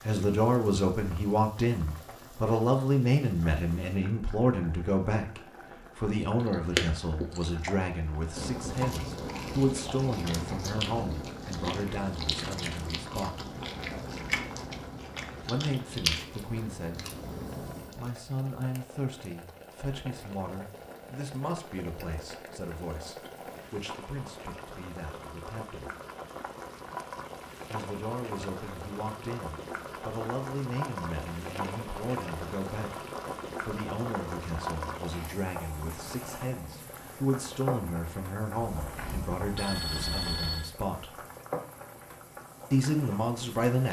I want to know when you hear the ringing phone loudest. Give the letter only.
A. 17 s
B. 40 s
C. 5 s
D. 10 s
B.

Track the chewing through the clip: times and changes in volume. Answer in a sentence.
You can hear the chewing from 6.4 to 18.1 s, at a steady volume.